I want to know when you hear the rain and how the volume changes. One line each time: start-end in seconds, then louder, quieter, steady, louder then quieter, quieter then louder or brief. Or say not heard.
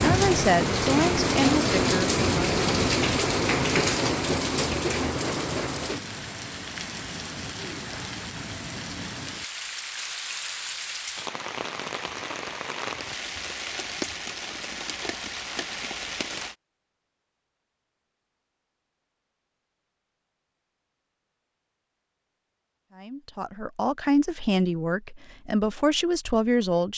0.0-16.6 quieter.